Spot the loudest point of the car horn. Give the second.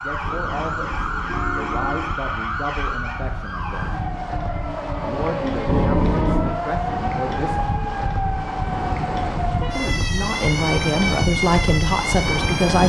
6 s.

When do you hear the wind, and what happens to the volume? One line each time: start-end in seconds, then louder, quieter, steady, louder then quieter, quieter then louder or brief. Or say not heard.
0.0-12.8 louder.